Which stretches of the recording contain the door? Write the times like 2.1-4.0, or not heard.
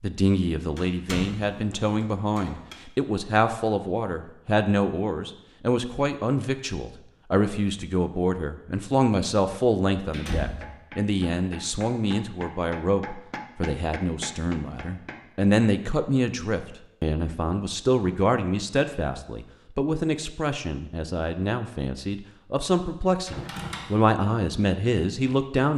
0.8-2.8, 9.9-10.8, 23.2-23.9.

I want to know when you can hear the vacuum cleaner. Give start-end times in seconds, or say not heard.
not heard.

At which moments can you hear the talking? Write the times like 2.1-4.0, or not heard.
0.0-25.7.